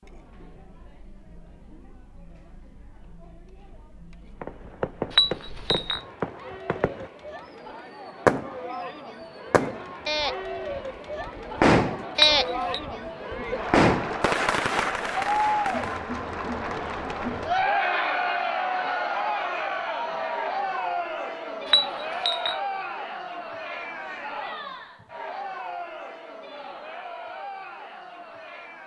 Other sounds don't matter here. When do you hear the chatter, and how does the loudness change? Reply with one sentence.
The chatter can be heard from 0.0 to 28.8 s, getting louder then quieter.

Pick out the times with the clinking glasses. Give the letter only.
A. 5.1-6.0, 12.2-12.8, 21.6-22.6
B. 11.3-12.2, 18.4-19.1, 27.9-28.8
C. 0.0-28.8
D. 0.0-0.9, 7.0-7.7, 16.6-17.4
A.